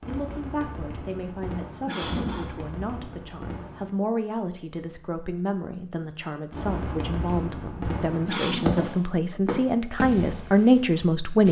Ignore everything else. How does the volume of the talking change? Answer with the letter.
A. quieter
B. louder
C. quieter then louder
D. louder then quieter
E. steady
B.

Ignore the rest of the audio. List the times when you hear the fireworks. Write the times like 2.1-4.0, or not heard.
0.0-3.9, 6.5-11.4.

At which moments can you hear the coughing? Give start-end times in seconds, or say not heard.
1.9-2.5, 8.2-8.7.